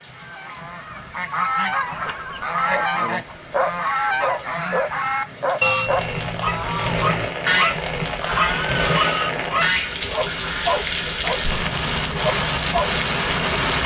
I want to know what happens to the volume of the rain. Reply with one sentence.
The volume of the rain goes up.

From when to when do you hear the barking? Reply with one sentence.
The barking can be heard from 1.9 to 12.9 s.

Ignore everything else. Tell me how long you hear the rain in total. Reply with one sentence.
The rain can be heard for 14 seconds in total.